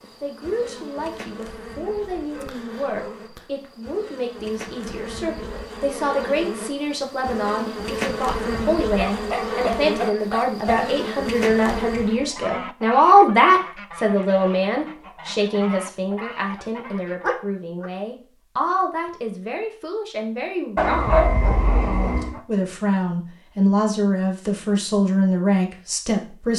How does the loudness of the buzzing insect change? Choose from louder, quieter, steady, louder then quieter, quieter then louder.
louder.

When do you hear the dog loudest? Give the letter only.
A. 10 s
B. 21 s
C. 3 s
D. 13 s
B.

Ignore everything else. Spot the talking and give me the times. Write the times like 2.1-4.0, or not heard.
0.0-26.5.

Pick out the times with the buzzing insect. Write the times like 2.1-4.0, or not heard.
0.0-12.3.